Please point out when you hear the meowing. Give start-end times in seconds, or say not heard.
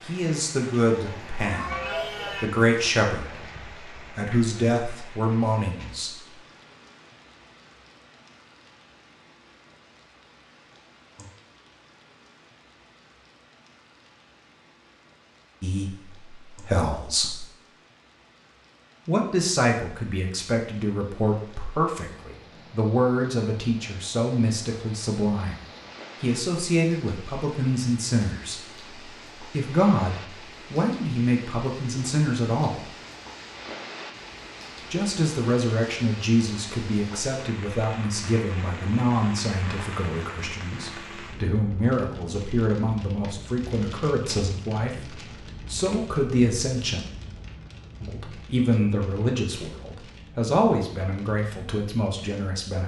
0.8-2.5.